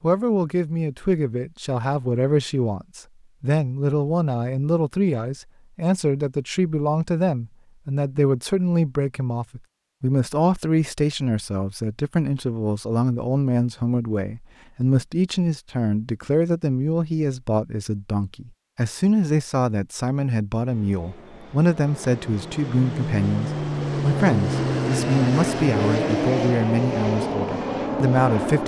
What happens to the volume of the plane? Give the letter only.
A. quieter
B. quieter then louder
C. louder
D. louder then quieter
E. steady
C.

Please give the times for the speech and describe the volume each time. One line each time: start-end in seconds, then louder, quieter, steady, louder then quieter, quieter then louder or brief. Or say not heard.
0.0-28.6 steady.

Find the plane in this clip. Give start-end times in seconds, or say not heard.
20.6-28.6.